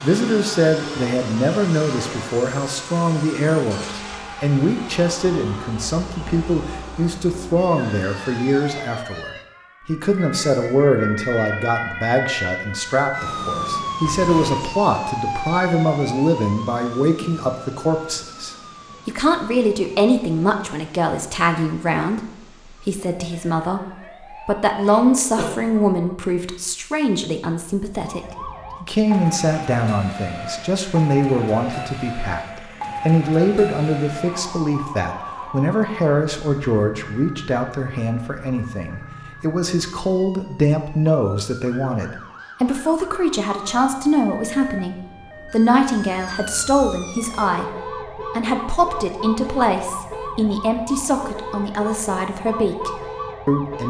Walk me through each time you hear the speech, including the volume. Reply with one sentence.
The speech can be heard from 0.0 to 22.2 s, at a steady volume; and from 22.8 to 53.8 s, at a steady volume.